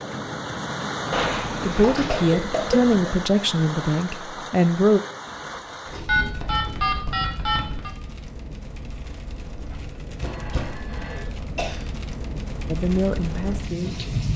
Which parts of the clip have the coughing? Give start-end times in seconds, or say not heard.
2.0-3.0, 5.2-6.8, 10.2-11.8.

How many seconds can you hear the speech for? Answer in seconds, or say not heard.
5 s.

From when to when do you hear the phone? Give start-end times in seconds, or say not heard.
1.1-2.3, 6.0-7.9, 10.2-11.2.